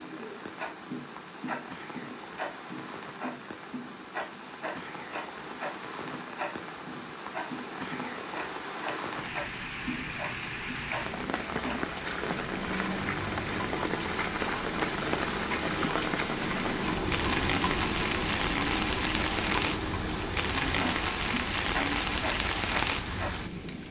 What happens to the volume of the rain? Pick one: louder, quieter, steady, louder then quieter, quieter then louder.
louder.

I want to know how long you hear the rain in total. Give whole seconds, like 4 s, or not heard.
24 s.